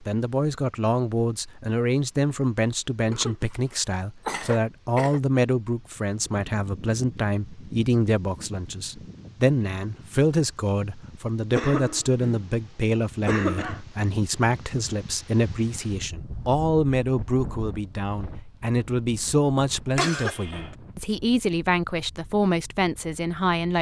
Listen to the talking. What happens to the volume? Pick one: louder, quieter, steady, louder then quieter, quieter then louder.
steady.